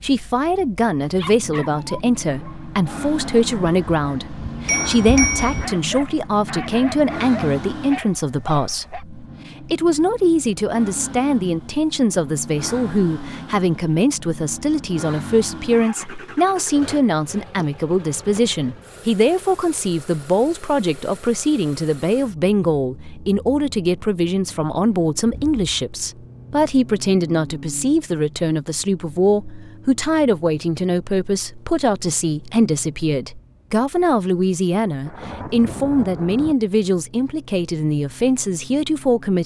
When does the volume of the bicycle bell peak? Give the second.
5 s.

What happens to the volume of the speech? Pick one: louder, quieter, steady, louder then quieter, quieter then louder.
steady.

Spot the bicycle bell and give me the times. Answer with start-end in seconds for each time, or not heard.
3.9-5.7.